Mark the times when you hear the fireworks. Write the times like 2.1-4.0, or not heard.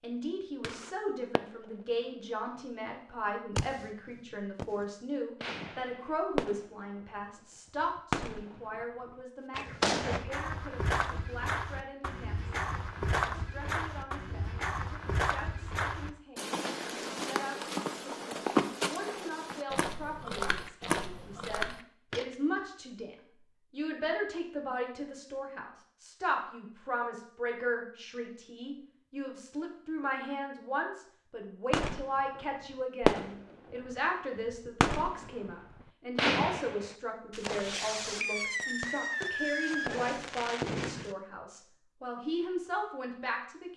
0.6-1.7, 3.5-7.0, 7.8-10.2, 31.7-33.8, 34.5-41.1.